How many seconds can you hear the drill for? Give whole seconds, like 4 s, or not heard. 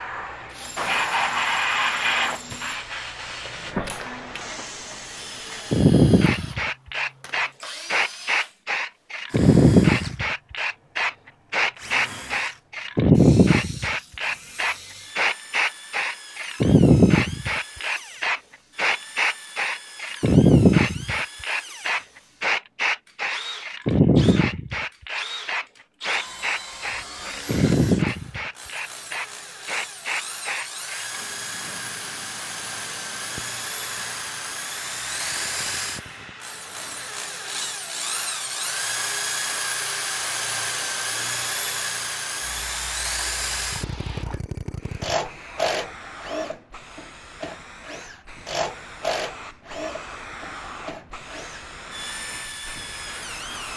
53 s.